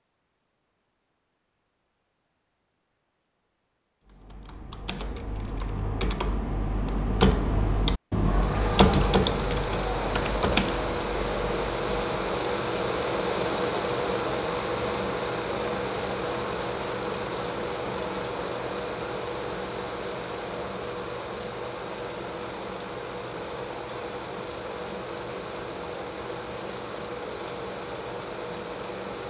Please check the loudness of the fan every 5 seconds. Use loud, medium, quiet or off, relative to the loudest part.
off, loud, loud, loud, medium, medium.